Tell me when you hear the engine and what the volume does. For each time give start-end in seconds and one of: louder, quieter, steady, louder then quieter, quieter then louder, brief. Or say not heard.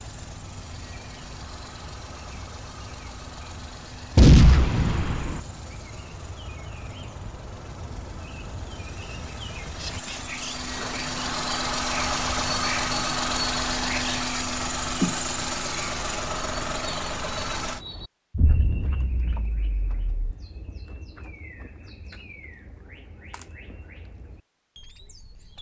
0.0-17.8 louder.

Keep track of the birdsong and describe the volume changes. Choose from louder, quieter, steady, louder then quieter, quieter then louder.
louder then quieter.